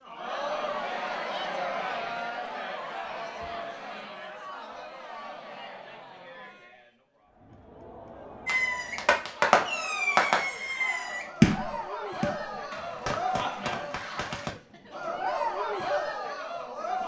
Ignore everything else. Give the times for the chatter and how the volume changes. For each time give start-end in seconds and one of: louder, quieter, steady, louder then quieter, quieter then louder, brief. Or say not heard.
0.0-17.0 quieter then louder.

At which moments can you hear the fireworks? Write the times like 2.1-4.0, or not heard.
8.4-14.6.